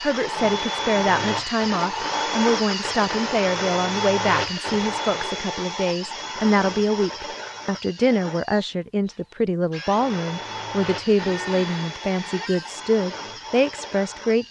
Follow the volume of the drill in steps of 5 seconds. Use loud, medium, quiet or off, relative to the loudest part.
loud, medium, medium.